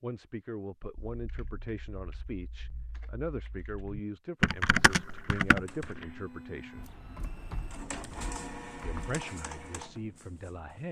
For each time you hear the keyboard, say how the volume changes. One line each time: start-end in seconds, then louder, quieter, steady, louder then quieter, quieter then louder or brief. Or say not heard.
1.1-9.2 louder then quieter.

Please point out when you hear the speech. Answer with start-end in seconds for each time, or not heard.
0.0-6.9, 8.8-10.8.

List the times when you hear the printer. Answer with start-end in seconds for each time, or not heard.
5.5-10.8.